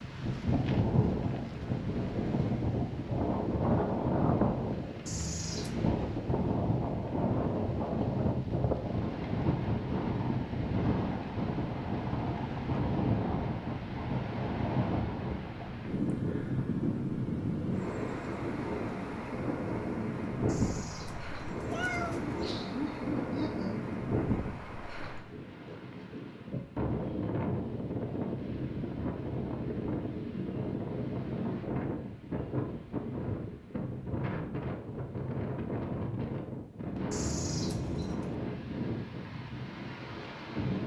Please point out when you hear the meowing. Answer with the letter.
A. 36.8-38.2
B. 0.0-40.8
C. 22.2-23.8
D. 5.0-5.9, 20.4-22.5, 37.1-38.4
D.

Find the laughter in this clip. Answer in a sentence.
The laughter can be heard from 22.2 to 23.8 s.